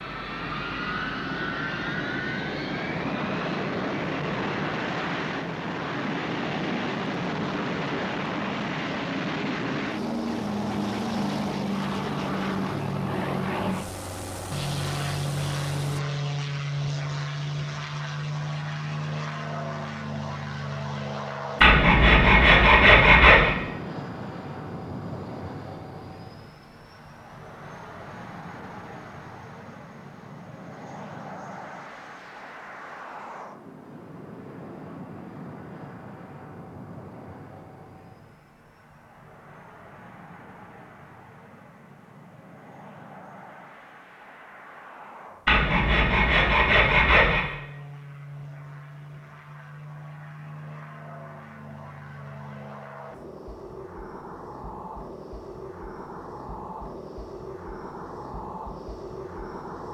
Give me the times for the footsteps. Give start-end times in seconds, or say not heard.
not heard.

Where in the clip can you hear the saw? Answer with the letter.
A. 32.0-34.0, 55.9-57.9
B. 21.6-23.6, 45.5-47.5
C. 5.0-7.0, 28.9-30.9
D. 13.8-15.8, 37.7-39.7
B.